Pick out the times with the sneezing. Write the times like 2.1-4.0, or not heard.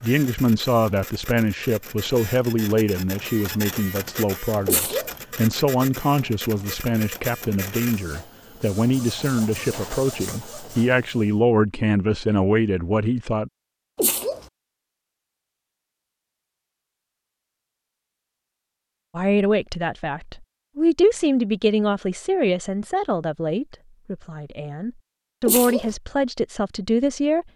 4.7-5.2, 13.9-14.4, 25.4-25.9.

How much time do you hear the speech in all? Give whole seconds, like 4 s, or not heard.
22 s.